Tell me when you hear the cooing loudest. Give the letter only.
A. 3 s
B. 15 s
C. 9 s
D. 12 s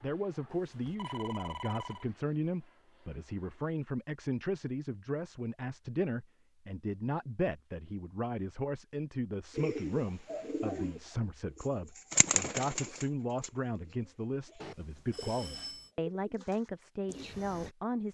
D.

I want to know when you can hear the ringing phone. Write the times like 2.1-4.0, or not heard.
0.5-2.0, 14.6-15.9.